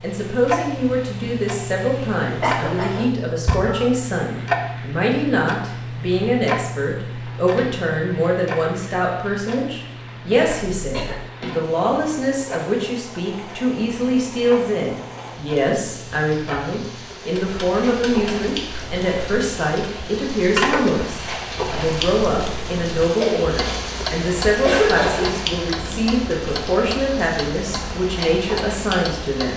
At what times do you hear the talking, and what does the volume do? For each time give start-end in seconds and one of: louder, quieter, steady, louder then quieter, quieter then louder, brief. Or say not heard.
0.0-29.5 steady.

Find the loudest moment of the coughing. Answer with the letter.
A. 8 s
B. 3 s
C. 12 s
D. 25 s
D.